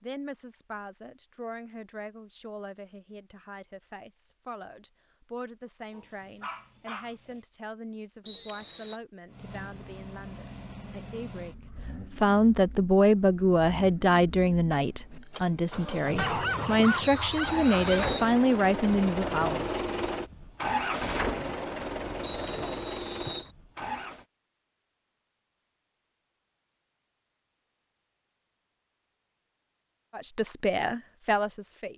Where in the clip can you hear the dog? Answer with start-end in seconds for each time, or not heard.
6.0-7.3, 16.1-18.2.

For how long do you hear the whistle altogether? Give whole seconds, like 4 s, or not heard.
3 s.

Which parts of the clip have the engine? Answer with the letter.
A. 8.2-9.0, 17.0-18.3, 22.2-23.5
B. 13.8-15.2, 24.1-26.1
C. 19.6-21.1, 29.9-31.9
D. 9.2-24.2
D.